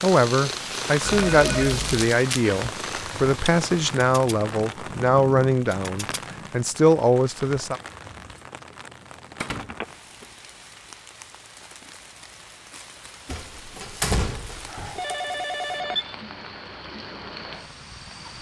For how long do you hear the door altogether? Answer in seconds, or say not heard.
4 s.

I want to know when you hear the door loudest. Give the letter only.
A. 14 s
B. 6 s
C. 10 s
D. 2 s
A.